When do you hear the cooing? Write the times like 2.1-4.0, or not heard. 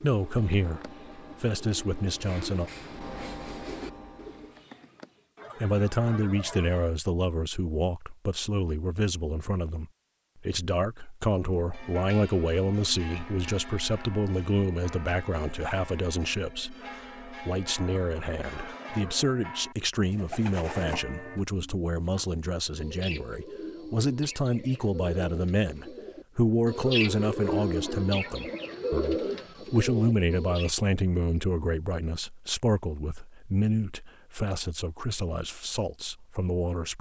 0.0-5.2, 20.1-30.7.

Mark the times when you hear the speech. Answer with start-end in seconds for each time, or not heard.
0.0-2.7, 5.5-36.9.